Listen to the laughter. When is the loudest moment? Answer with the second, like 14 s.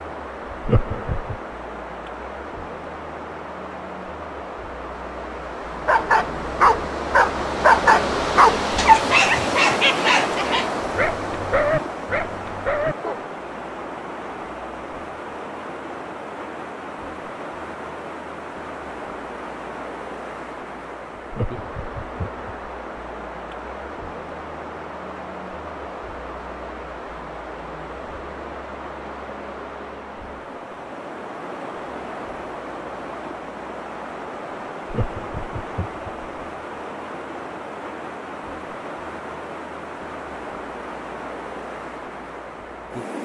1 s.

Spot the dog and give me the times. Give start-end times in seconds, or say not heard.
5.8-13.2.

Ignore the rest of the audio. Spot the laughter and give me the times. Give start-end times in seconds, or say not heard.
0.6-1.4, 21.3-22.7, 34.9-36.2.